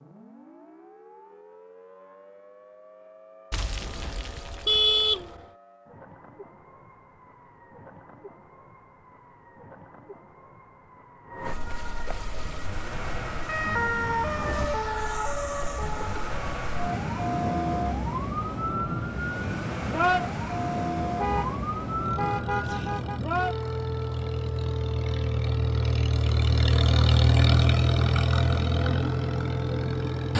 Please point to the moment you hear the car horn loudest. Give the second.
5 s.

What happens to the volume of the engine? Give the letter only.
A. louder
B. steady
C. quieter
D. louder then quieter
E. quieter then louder
A.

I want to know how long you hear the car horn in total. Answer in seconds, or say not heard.
4 s.